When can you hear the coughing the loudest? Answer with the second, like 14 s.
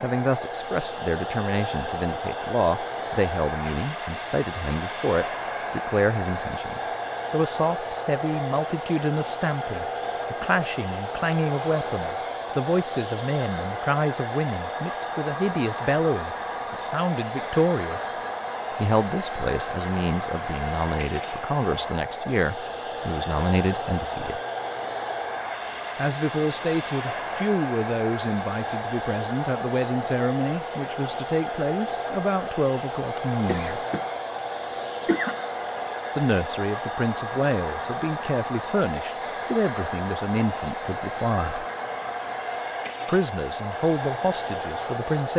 35 s.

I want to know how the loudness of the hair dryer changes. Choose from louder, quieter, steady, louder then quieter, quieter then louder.
steady.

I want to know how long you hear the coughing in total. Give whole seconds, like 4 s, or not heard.
2 s.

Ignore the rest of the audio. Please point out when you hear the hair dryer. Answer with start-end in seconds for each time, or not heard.
0.0-45.3.